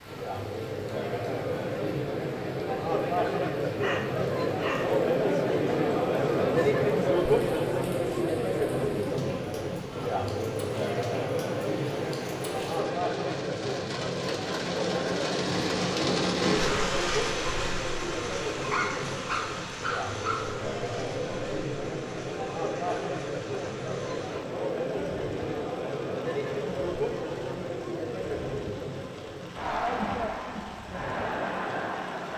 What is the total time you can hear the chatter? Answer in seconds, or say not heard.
32 s.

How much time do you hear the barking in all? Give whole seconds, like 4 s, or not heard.
3 s.